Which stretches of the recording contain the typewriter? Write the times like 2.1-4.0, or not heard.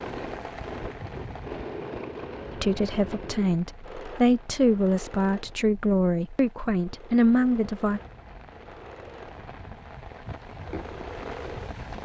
not heard.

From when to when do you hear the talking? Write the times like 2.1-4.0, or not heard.
2.5-8.0.